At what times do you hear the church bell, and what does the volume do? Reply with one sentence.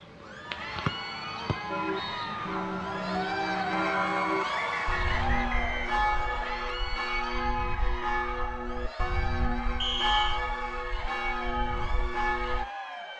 You can hear the church bell from 1.6 to 12.7 s, at a steady volume.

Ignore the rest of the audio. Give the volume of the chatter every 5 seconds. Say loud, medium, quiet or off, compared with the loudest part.
loud, loud, medium.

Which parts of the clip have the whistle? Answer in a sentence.
The whistle can be heard from 0.8 to 2.4 s, from 4.5 to 6.5 s and from 9.8 to 10.4 s.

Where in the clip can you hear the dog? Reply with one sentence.
You can't hear the dog here.